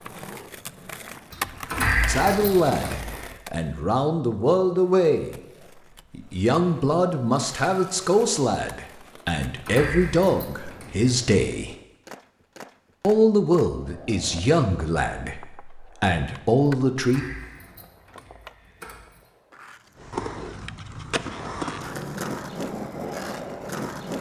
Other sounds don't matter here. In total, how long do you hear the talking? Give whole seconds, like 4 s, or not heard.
13 s.